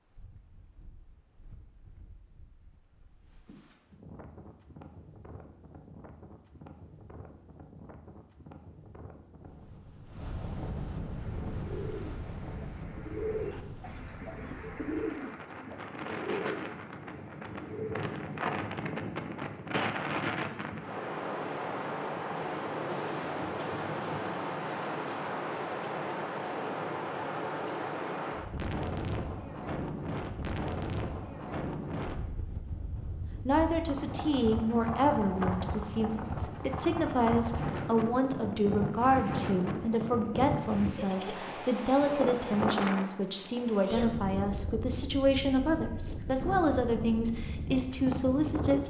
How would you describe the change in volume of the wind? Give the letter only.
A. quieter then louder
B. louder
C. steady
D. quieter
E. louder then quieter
B.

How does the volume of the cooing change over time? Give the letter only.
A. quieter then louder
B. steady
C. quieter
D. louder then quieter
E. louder
D.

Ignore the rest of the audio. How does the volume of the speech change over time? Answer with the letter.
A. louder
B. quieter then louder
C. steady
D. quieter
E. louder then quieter
C.